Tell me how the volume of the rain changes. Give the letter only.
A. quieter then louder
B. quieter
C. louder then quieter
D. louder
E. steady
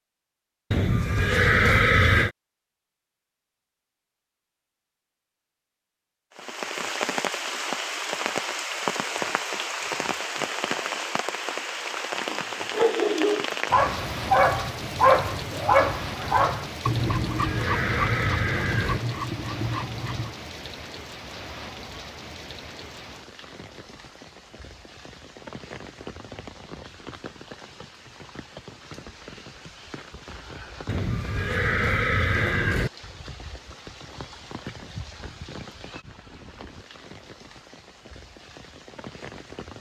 B.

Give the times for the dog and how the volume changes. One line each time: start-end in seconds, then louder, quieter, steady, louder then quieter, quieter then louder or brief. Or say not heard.
12.3-20.4 quieter.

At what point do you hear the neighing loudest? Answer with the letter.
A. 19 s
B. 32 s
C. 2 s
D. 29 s
C.